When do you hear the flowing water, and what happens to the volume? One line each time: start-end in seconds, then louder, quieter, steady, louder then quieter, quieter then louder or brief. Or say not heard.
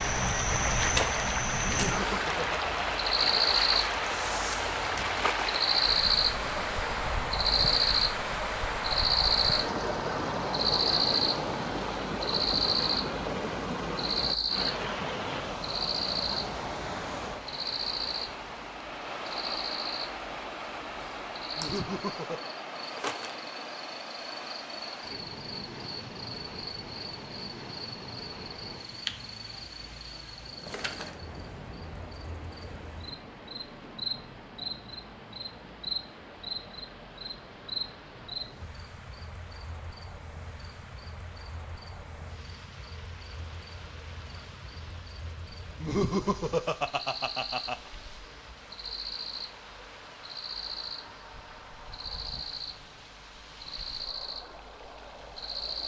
0.0-55.8 quieter.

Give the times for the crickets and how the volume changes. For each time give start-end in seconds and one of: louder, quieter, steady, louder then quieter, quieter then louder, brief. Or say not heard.
0.0-55.8 quieter.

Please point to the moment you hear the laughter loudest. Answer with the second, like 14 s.
46 s.